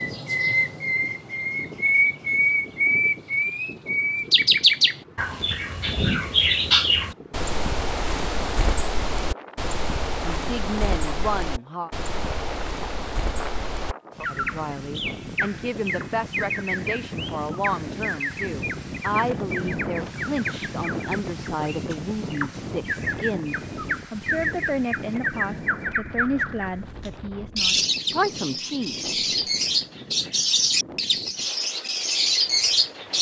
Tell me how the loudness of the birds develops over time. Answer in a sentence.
The volume of the birds goes down, then up.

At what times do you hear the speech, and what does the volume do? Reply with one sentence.
The speech can be heard briefly from 10.2 to 11.9 s; and from 14.2 to 29.1 s, at a steady volume.